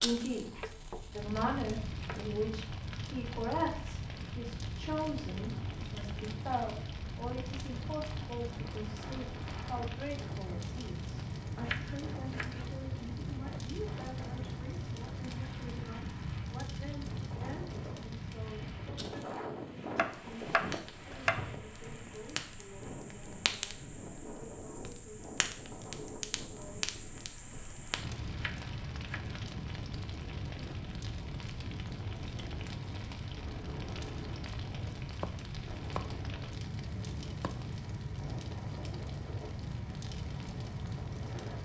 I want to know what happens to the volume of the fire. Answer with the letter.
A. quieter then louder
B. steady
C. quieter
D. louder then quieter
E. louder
B.